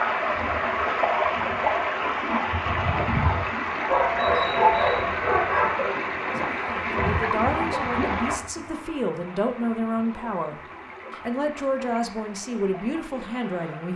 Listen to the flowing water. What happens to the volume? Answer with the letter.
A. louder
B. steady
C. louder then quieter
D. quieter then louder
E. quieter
E.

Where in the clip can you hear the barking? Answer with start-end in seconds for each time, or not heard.
3.9-5.9.